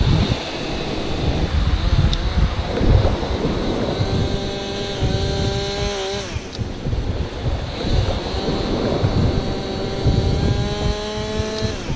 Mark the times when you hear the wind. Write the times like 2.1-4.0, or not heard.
0.0-11.9.